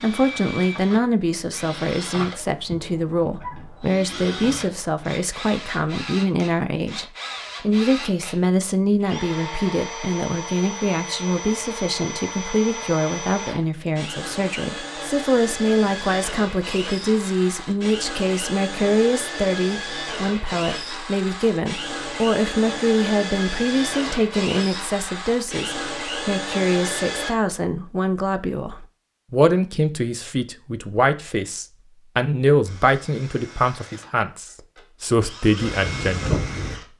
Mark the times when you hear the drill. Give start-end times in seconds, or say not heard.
0.0-27.4, 32.6-36.9.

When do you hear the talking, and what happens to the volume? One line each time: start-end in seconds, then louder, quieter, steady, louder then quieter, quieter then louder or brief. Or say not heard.
0.0-36.5 steady.